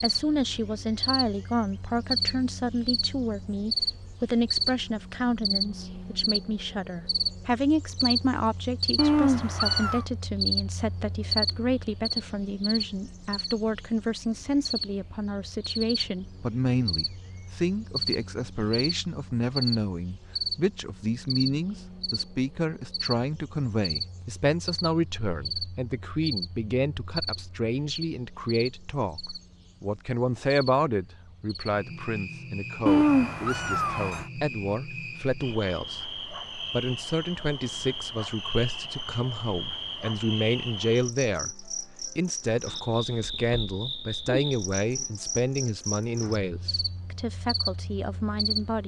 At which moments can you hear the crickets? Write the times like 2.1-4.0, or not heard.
0.0-48.8.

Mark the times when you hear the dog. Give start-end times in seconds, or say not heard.
not heard.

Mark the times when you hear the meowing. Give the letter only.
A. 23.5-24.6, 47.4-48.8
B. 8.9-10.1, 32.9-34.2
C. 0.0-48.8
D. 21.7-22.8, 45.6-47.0
B.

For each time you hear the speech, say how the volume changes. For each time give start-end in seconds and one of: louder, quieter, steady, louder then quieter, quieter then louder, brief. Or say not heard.
0.0-48.8 steady.